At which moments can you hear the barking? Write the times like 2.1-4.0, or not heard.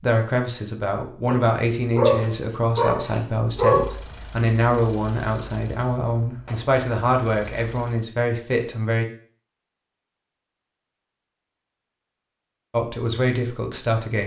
1.2-4.0.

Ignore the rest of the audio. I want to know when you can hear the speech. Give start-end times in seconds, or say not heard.
0.0-9.1, 12.7-14.2.